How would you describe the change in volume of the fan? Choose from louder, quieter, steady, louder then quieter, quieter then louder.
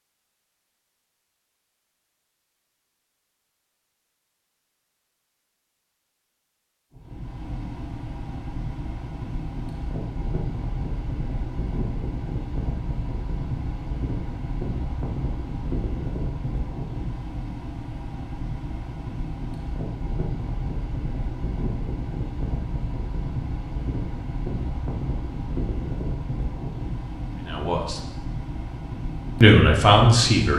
steady.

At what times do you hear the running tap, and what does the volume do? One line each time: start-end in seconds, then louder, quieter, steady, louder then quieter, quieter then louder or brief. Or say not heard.
not heard.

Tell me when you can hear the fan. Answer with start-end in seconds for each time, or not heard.
7.0-30.5.